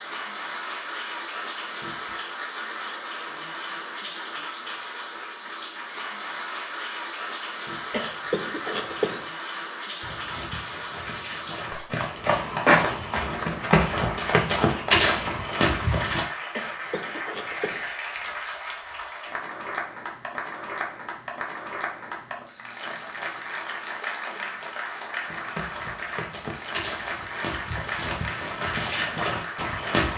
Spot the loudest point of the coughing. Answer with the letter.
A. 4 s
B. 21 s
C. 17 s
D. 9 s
D.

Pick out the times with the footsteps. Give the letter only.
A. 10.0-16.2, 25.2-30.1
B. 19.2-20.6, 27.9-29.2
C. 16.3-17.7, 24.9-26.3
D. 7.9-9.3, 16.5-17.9
A.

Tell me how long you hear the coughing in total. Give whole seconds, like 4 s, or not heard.
3 s.